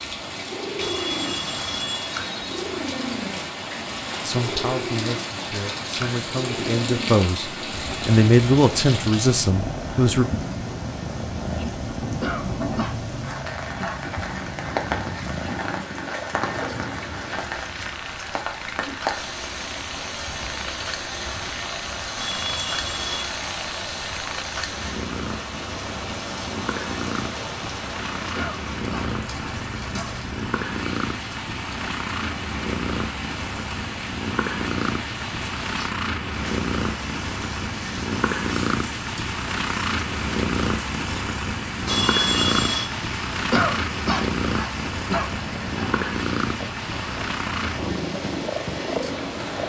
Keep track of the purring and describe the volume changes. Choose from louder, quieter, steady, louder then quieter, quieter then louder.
louder.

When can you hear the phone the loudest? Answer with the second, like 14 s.
42 s.